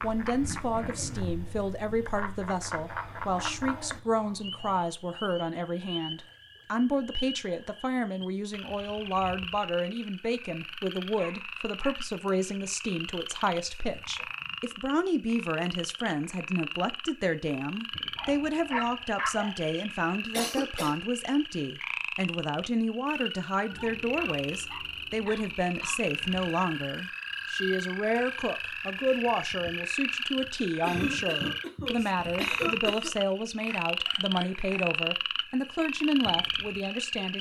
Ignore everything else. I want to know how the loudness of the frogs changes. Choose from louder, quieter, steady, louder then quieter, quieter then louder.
louder.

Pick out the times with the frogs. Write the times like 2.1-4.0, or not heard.
0.0-37.3.